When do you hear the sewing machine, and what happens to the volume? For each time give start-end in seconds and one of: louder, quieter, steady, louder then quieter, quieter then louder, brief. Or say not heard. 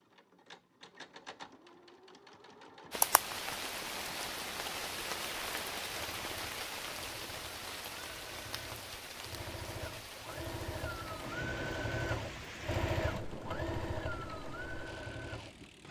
0.0-15.8 louder.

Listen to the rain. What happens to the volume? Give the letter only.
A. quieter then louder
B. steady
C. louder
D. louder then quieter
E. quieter
E.